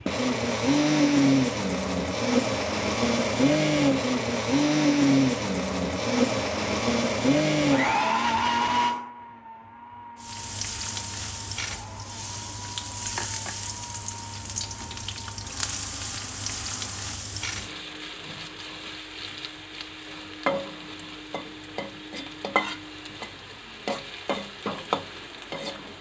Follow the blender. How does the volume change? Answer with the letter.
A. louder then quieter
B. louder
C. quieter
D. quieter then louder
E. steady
C.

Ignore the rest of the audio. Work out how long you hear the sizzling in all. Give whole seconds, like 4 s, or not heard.
16 s.